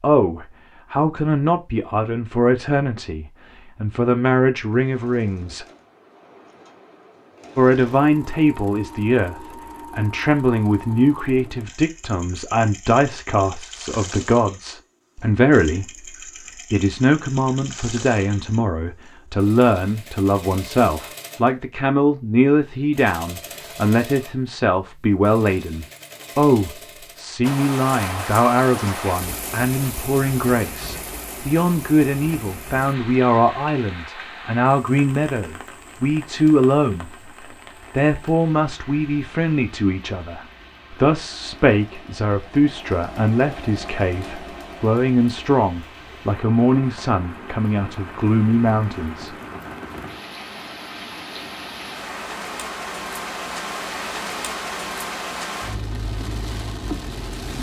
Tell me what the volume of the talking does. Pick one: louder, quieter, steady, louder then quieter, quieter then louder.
steady.